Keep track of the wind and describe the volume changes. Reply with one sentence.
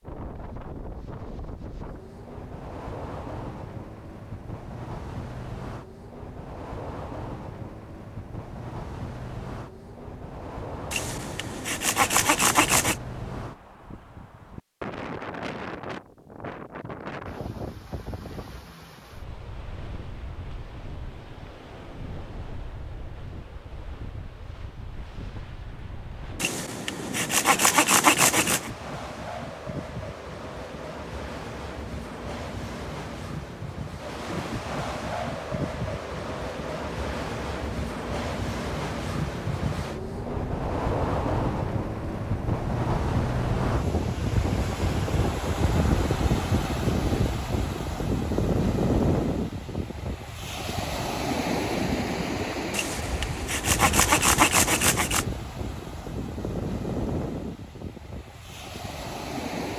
The volume of the wind goes up.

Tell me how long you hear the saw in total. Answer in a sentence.
You can hear the saw for 7 seconds altogether.